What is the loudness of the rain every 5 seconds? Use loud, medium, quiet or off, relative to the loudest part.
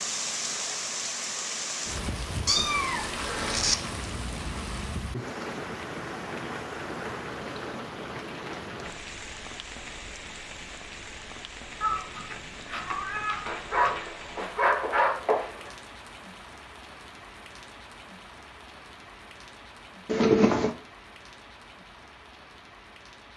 loud, loud, medium, quiet, quiet.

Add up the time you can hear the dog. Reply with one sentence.
The dog can be heard for 2 seconds in total.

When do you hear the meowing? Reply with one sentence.
You can hear the meowing from 2.5 to 3.8 s, from 11.8 to 14.0 s and from 20.1 to 20.8 s.